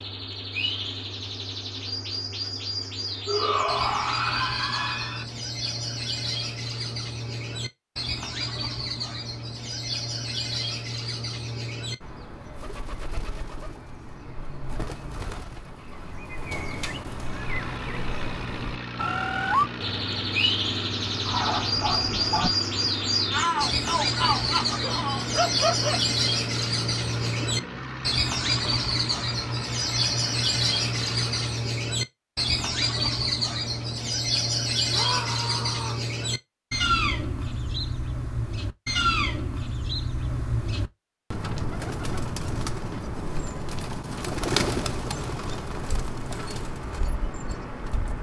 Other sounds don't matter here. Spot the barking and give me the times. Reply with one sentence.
The barking can be heard from 21.2 to 22.5 s and from 24.8 to 26.0 s.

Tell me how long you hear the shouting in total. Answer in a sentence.
The shouting can be heard for 5 seconds in total.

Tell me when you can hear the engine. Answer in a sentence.
The engine can be heard from 17.1 to 31.8 s.